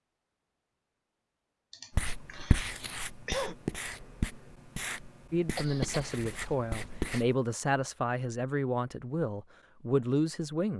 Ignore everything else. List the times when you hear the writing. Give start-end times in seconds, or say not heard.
1.9-7.3.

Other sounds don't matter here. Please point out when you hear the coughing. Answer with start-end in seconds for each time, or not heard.
1.7-3.5, 5.5-7.0.